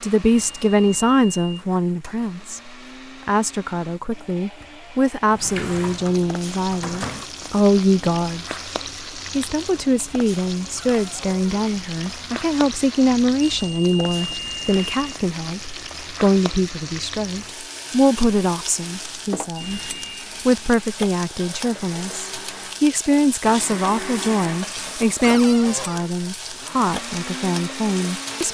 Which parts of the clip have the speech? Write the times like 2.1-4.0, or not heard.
0.0-8.4, 9.3-28.4.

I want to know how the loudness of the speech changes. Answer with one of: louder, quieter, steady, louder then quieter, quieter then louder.
steady.